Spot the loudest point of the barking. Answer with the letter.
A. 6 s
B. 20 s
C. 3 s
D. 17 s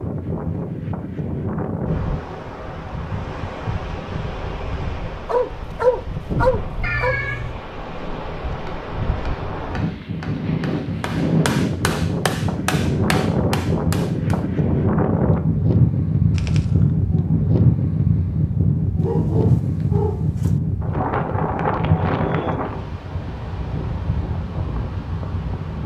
A.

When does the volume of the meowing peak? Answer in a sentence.
The volume of the meowing peaks at 7 seconds.